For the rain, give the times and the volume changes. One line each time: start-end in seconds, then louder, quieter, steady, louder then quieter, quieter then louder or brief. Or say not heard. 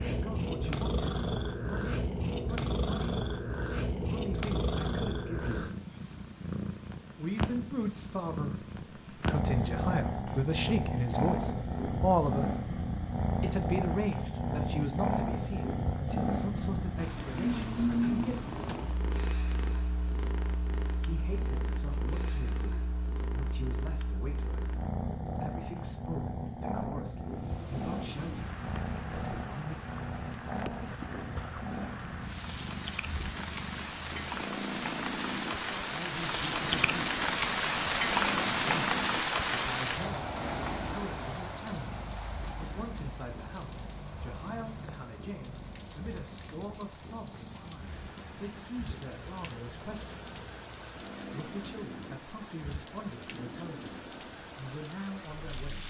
27.2-55.8 louder then quieter.